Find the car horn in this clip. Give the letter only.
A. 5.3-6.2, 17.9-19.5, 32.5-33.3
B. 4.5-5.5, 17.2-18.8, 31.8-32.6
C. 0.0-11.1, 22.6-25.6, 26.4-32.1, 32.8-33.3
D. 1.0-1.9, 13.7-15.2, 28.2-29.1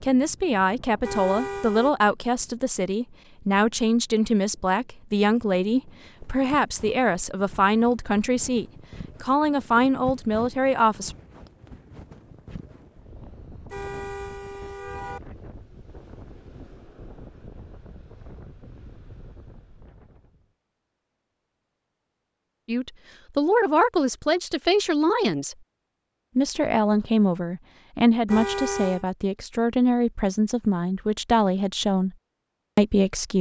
D.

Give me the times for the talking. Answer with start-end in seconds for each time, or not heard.
0.0-11.1, 22.6-25.6, 26.4-32.1, 32.8-33.3.